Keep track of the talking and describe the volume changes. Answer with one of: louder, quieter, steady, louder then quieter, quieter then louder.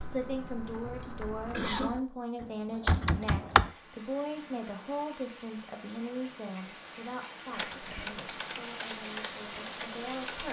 quieter.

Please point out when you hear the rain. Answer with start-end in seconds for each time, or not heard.
3.5-10.4.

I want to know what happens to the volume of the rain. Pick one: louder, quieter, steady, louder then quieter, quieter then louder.
louder.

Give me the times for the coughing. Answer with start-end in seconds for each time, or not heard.
0.3-1.9, 7.5-8.3.